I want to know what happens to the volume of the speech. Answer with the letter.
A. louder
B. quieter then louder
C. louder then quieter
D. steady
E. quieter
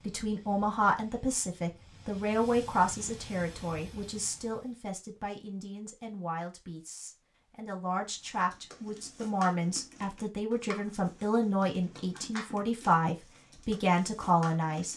B.